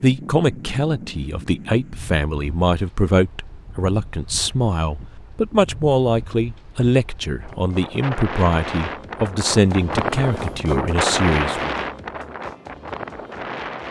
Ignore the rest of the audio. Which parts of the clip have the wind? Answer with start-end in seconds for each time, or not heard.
0.0-13.8.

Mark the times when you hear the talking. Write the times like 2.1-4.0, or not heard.
0.0-11.8.